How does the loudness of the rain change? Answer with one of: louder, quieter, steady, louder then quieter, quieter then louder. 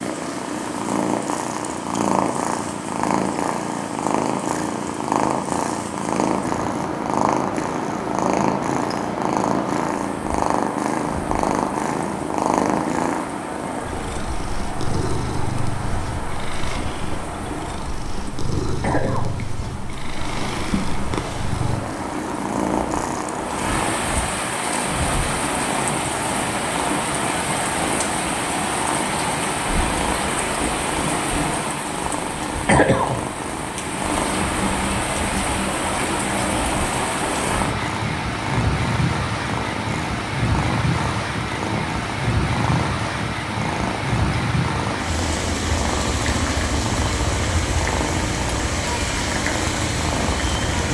louder.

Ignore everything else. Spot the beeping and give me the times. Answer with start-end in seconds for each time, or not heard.
not heard.